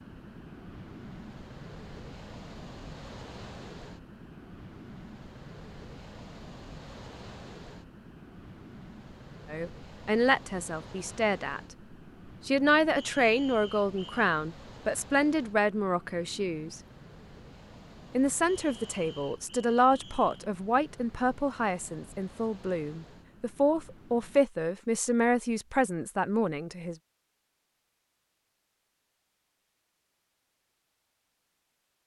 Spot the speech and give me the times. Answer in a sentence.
You can hear the speech from 9.5 to 11.6 s, from 12.4 to 16.8 s and from 18.1 to 26.9 s.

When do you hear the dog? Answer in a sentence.
The dog can't be heard in this clip.